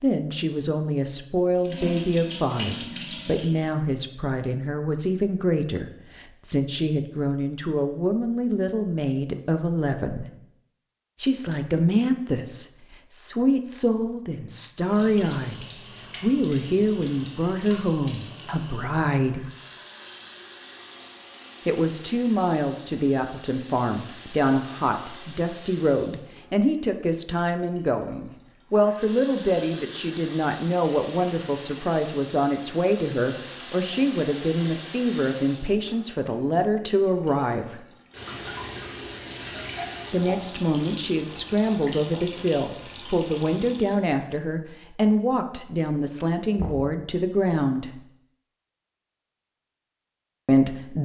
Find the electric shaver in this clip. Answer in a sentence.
The electric shaver can't be heard in this clip.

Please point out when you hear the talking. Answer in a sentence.
You can hear the talking from 0.0 to 10.3 s, from 11.2 to 19.4 s, from 21.6 to 37.9 s, from 40.1 to 48.0 s and from 50.5 to 50.9 s.